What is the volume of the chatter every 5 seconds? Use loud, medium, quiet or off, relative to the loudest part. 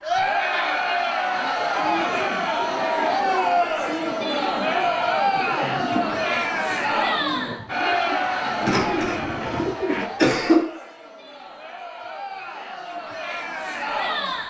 loud, loud, medium.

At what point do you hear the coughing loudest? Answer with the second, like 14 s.
10 s.